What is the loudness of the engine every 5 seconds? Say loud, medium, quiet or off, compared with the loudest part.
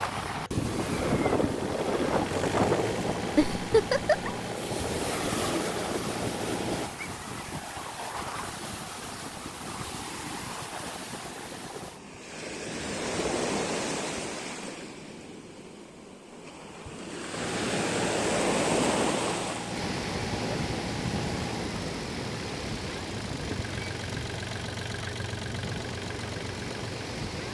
loud, loud, off, loud, loud, loud.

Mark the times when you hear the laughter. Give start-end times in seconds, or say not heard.
3.4-4.3.